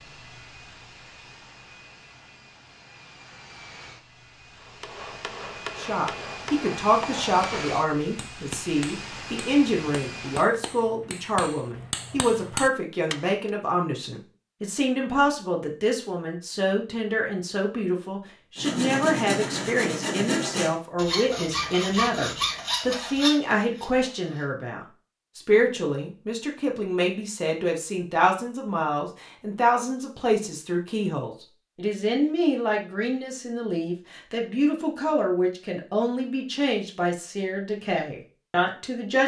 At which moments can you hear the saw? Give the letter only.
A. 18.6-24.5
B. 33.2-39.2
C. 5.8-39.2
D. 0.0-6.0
A.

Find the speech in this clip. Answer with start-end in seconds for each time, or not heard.
5.8-39.2.